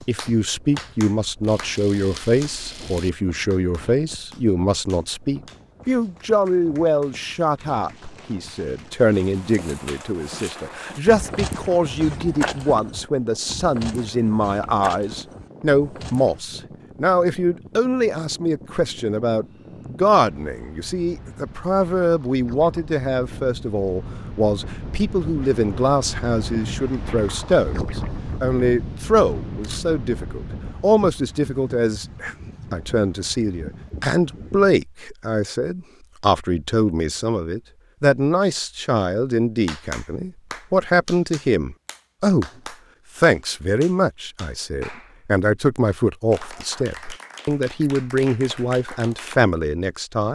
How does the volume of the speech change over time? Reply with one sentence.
The loudness of the speech stays about the same.